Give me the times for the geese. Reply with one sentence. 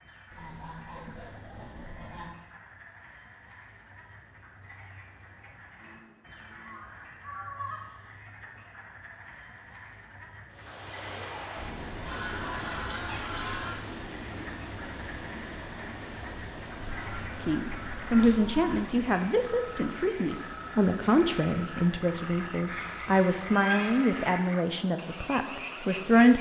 The geese can be heard from 0.3 to 2.3 s, from 5.8 to 7.8 s, from 12.1 to 13.8 s, from 16.8 to 18.8 s and from 22.6 to 24.4 s.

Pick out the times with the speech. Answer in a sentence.
The speech can be heard from 17.4 to 26.3 s.